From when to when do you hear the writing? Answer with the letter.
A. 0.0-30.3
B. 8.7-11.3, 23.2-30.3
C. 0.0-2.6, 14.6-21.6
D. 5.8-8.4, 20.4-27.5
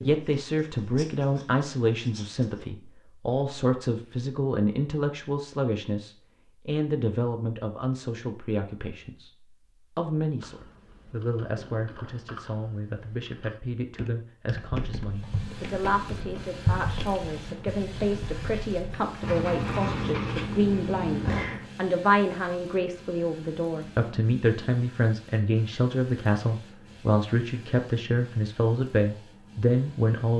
C.